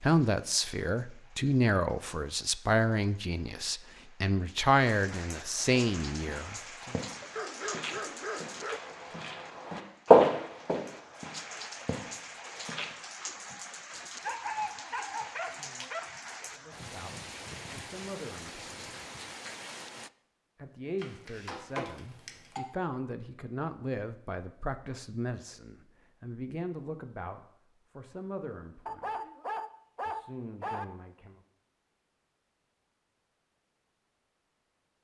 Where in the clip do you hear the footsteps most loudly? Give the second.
10 s.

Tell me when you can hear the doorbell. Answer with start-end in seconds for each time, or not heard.
20.9-22.6.